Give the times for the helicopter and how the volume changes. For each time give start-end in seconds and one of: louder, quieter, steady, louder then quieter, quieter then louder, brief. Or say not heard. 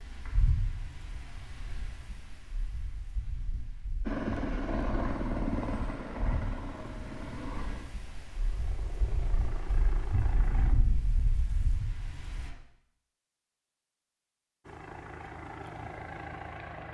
4.0-10.8 quieter then louder
14.7-16.9 brief.